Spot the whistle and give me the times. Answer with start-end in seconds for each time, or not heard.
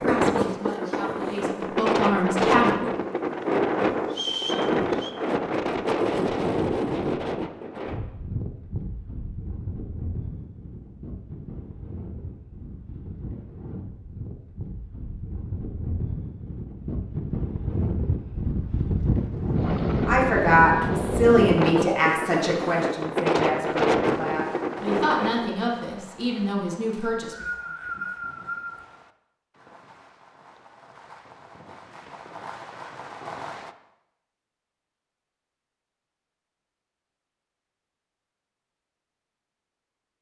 4.1-5.1, 26.9-28.8.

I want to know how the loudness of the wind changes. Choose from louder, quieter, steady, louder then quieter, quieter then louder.
quieter then louder.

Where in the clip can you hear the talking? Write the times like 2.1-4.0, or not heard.
0.0-2.9, 20.1-27.4.